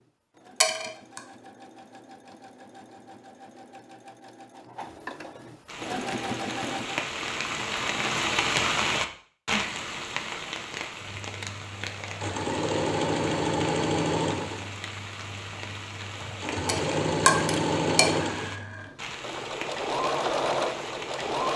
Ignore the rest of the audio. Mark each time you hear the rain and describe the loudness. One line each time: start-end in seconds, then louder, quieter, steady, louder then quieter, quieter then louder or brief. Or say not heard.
5.7-21.5 quieter.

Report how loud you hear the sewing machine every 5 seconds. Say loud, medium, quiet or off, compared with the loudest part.
quiet, medium, loud, loud, loud.